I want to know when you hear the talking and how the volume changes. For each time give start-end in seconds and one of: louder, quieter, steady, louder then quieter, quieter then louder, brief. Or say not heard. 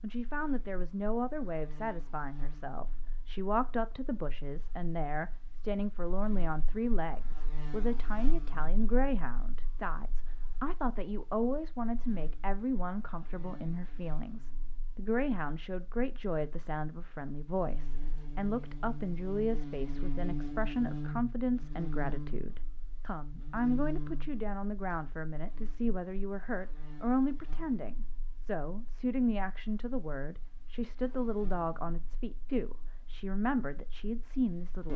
0.0-34.9 steady.